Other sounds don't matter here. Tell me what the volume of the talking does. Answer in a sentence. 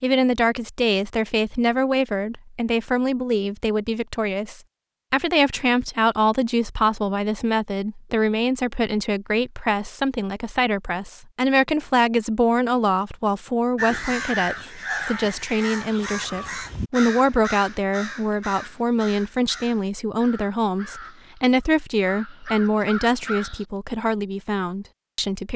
The volume of the talking stays about the same.